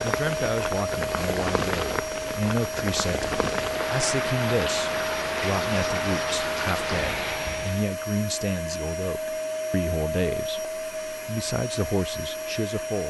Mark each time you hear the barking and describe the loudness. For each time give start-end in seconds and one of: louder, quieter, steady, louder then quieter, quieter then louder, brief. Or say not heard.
not heard.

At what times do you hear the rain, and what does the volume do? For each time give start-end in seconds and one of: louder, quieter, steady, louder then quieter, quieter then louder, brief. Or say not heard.
0.0-7.9 steady.